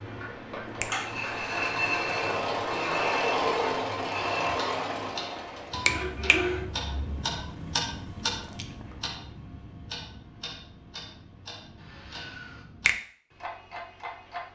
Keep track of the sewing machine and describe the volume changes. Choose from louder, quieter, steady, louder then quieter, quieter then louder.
louder then quieter.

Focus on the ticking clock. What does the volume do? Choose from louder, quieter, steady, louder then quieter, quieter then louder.
louder then quieter.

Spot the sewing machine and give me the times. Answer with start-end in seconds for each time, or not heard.
0.0-6.7.